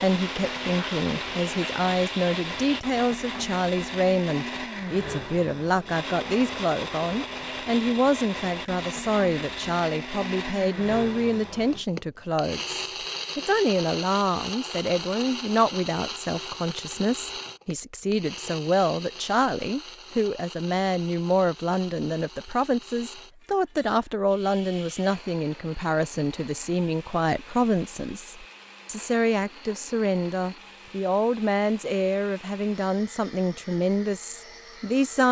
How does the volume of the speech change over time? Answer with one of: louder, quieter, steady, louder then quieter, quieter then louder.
steady.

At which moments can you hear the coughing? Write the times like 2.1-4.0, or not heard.
not heard.